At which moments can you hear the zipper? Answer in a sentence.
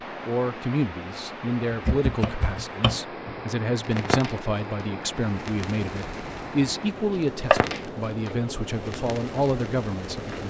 You can't hear the zipper here.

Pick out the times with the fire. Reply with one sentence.
You can hear the fire from 3.8 to 10.4 s.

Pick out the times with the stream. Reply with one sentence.
You can hear the stream from 0.0 to 10.4 s.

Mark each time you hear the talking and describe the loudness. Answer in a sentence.
The talking can be heard from 0.2 to 10.4 s, at a steady volume.